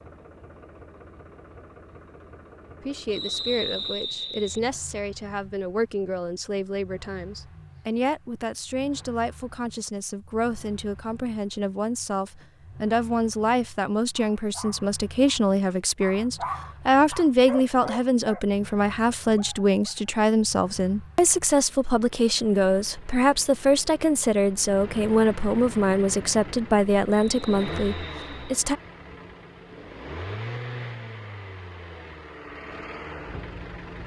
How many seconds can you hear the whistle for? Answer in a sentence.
The whistle can be heard for 3 seconds in total.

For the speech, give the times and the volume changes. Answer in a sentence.
You can hear the speech from 2.8 to 28.8 s, getting louder.